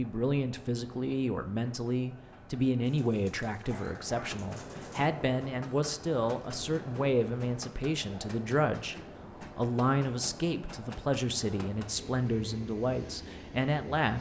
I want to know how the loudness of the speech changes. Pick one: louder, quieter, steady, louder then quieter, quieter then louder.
steady.